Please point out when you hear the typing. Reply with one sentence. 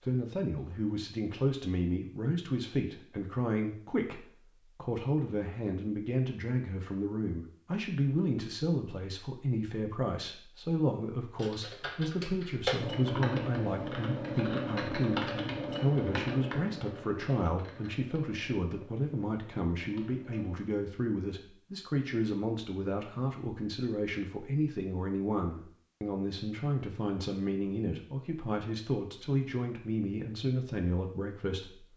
You can hear the typing from 11.3 to 20.6 s.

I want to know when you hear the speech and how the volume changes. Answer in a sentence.
The speech can be heard from 0.0 to 31.9 s, at a steady volume.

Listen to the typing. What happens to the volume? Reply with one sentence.
The loudness of the typing goes down.